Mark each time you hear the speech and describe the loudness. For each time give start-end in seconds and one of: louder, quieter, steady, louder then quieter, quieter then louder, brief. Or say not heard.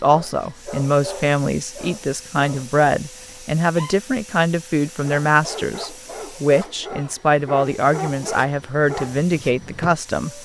0.0-10.4 steady.